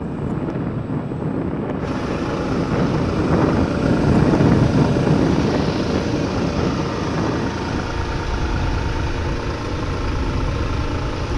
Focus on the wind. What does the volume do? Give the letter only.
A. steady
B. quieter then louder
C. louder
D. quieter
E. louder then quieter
E.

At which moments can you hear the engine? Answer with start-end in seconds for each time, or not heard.
0.0-11.3.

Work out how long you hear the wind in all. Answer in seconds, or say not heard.
11 s.